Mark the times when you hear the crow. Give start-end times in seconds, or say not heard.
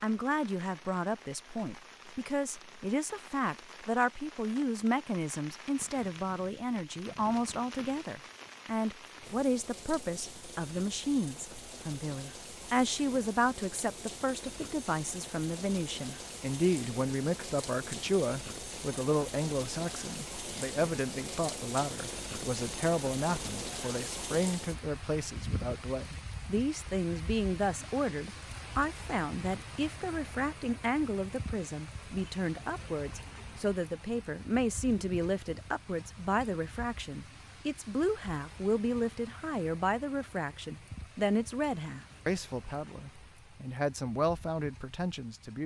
not heard.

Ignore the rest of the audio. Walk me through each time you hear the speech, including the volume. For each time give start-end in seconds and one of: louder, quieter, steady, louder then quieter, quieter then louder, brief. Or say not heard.
0.0-45.6 steady.